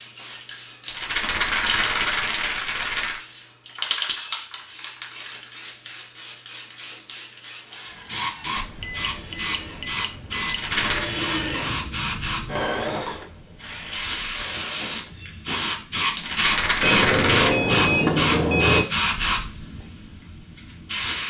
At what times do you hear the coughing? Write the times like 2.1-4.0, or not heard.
not heard.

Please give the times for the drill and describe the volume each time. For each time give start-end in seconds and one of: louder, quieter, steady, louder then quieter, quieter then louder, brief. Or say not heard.
7.7-15.2 louder then quieter.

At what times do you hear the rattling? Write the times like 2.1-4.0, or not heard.
0.8-3.2, 10.4-11.1, 16.1-17.6.